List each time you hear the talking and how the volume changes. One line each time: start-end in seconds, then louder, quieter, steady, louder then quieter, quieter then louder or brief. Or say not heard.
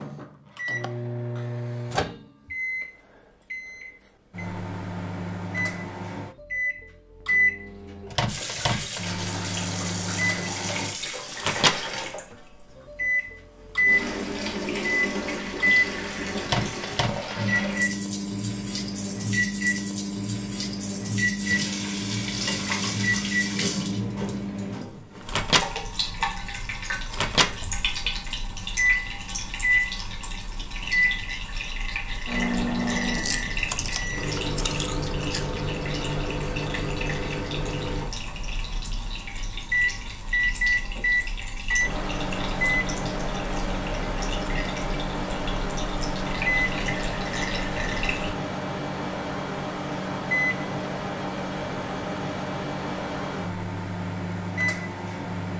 not heard.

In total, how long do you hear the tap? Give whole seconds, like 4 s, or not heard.
40 s.